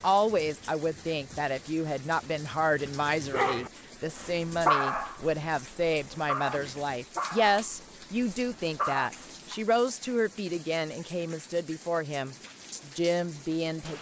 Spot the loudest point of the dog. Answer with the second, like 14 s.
5 s.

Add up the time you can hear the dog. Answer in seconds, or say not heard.
6 s.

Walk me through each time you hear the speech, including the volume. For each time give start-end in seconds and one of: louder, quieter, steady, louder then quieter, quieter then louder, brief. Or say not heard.
0.0-13.9 steady.